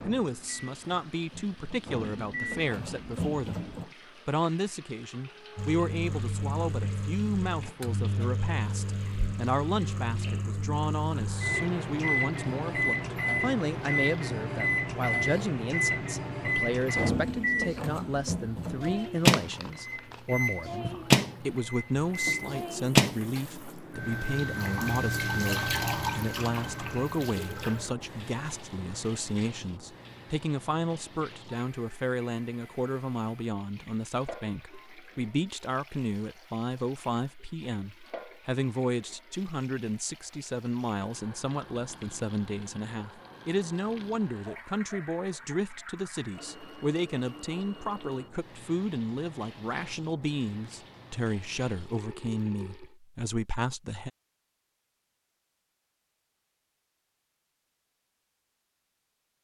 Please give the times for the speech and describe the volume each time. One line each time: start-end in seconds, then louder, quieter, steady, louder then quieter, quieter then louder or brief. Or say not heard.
0.0-54.1 steady.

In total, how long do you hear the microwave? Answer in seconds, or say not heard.
22 s.